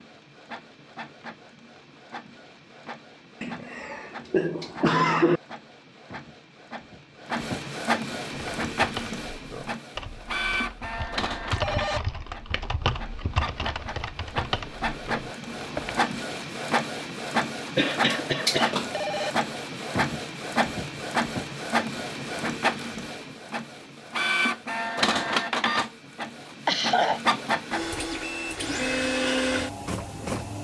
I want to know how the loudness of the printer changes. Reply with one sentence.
The volume of the printer goes up.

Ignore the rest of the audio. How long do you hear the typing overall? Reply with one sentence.
The typing can be heard for 8 seconds in total.